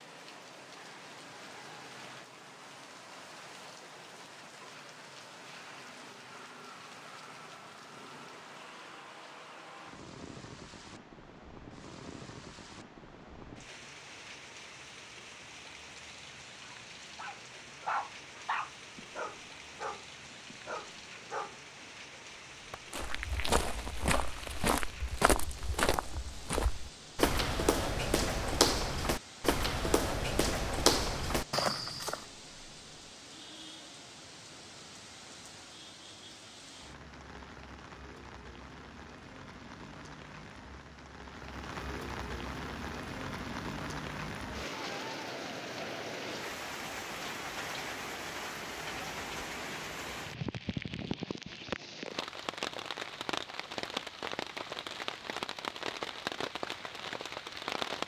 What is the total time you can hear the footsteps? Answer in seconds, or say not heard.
9 s.